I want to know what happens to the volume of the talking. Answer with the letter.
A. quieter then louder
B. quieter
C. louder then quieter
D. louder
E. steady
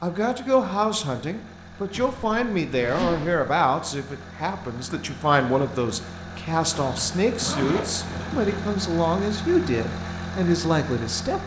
E.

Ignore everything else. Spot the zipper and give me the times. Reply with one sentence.
You can hear the zipper from 1.9 to 3.5 s and from 6.8 to 8.7 s.